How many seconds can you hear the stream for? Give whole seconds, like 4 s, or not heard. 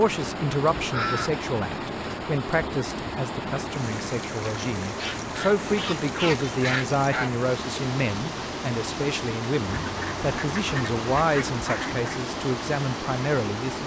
14 s.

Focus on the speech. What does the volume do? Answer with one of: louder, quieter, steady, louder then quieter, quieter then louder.
steady.